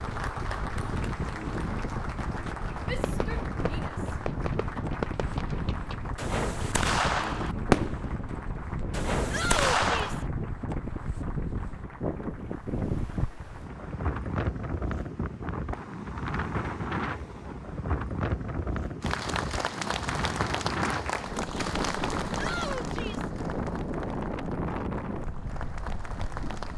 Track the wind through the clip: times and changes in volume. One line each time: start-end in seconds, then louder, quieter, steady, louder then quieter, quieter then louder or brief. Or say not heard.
0.0-26.7 steady.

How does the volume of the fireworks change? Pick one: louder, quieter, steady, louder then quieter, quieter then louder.
louder.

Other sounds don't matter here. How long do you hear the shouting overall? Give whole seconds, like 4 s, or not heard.
3 s.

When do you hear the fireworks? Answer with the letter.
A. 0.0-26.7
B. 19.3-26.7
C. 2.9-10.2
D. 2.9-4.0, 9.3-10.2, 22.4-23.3
C.